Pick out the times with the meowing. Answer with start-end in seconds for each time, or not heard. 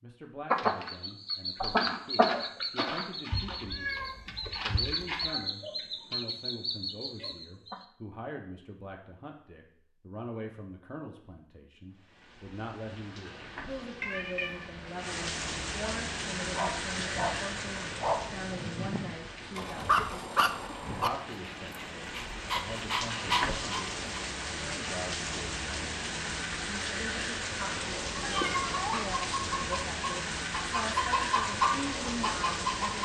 3.3-5.2, 14.0-14.9, 28.2-29.0.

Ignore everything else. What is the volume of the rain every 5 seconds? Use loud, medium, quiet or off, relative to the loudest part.
off, off, quiet, loud, loud, loud, loud.